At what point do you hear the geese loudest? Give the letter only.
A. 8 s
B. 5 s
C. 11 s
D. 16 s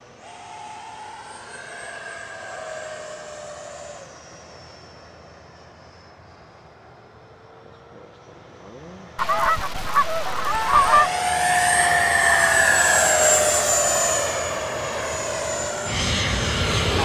C.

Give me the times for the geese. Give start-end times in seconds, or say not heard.
9.2-11.1.